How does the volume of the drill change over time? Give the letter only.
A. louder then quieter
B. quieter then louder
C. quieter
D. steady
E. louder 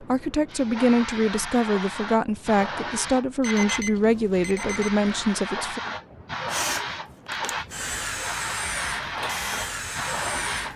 E.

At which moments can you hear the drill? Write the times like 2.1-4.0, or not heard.
6.5-10.7.